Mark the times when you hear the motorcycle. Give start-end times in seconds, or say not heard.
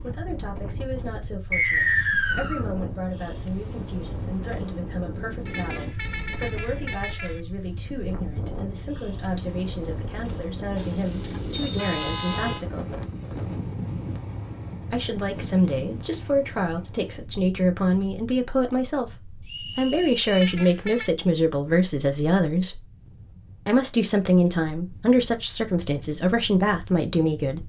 not heard.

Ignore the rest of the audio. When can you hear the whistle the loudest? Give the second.
2 s.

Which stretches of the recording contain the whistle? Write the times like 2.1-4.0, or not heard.
1.5-2.6, 11.5-12.4, 19.4-20.2.